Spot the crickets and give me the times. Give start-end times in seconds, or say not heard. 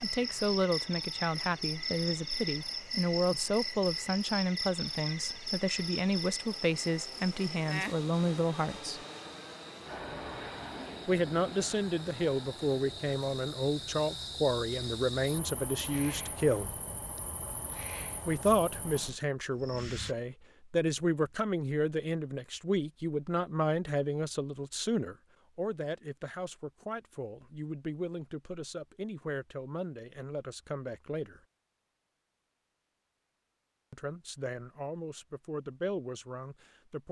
0.0-20.1.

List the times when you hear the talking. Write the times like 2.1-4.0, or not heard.
0.0-9.0, 11.1-16.8, 18.2-31.4, 33.9-37.0.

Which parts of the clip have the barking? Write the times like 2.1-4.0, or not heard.
not heard.